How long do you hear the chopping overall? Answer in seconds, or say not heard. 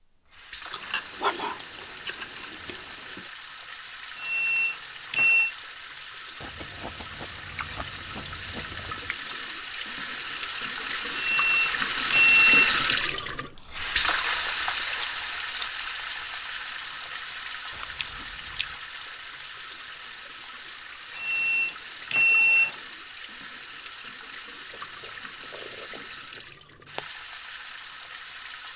not heard.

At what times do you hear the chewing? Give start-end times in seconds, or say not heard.
0.7-3.3, 6.4-9.2, 13.6-15.7, 17.7-18.8, 24.7-27.1.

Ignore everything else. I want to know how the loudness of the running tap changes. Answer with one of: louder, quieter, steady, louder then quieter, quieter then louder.
louder then quieter.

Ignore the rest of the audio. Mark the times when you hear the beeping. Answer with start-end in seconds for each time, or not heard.
4.2-5.5, 11.2-12.8, 21.1-22.8.